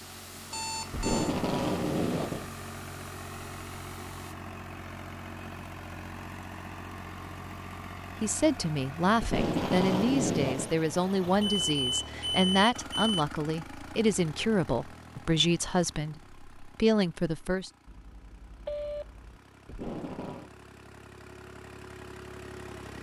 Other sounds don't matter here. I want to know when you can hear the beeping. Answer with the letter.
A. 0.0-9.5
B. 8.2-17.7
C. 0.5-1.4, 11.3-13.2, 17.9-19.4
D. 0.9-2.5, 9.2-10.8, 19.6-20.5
C.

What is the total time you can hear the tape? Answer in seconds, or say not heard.
4 s.